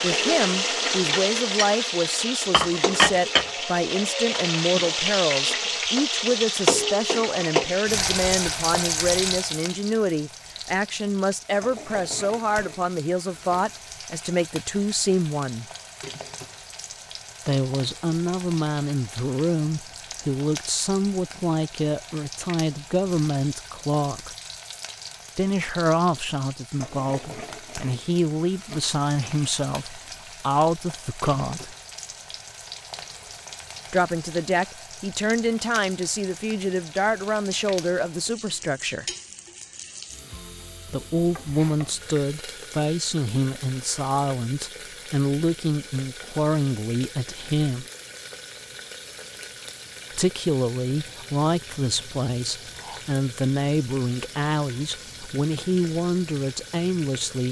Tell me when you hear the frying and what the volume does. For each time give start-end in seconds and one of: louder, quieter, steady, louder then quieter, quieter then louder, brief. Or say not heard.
0.0-57.4 quieter.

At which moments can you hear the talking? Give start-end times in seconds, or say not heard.
0.0-15.7, 17.4-24.4, 25.4-31.8, 33.9-39.0, 40.9-47.9, 50.1-57.4.